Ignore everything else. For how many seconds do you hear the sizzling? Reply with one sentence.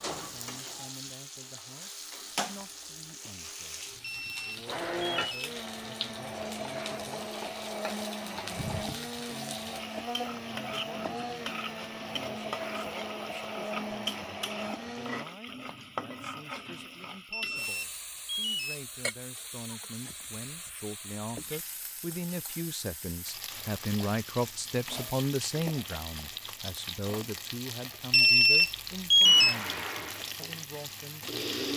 You can hear the sizzling for 32 seconds altogether.